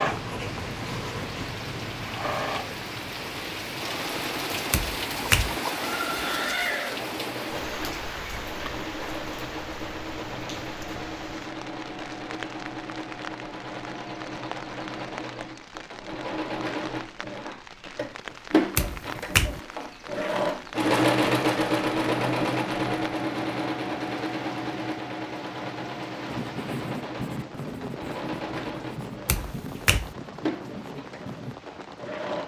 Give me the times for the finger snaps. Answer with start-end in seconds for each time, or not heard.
4.7-5.6, 18.8-19.6, 29.2-30.1.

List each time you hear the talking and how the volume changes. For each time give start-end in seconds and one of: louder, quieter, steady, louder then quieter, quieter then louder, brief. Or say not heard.
not heard.